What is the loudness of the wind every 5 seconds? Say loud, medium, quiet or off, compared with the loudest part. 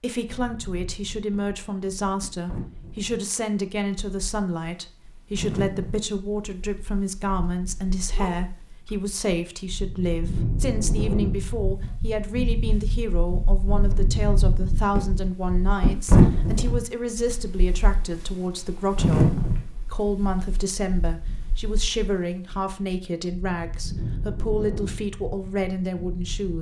quiet, quiet, medium, loud, quiet, quiet.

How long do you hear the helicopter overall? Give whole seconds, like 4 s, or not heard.
not heard.